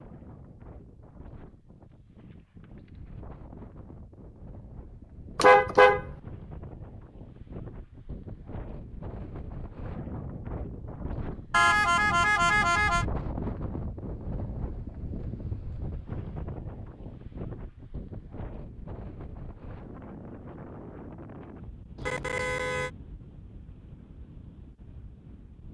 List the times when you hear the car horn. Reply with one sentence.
You can hear the car horn from 5.3 to 6.0 s, from 11.5 to 13.1 s and from 21.9 to 22.9 s.